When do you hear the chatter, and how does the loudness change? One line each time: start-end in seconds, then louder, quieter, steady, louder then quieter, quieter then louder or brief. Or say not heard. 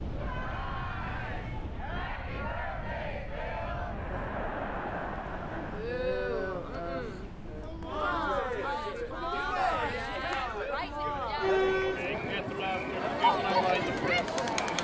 0.1-14.7 louder.